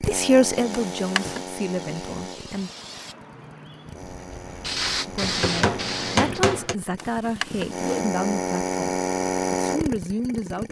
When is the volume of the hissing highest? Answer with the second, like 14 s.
5 s.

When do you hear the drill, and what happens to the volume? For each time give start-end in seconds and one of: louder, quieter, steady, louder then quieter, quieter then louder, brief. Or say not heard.
0.0-10.6 quieter then louder.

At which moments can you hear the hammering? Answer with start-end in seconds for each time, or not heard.
5.2-6.8.